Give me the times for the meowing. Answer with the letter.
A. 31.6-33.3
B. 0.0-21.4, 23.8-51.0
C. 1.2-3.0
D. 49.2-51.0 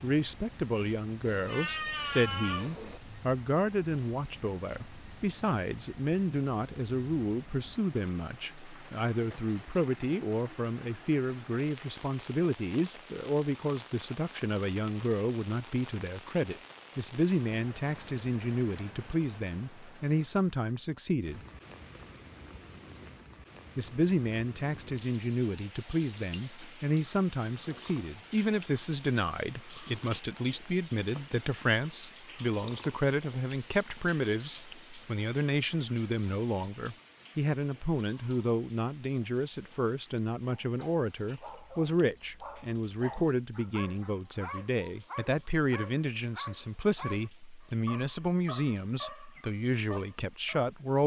C.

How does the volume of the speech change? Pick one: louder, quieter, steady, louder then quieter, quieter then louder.
steady.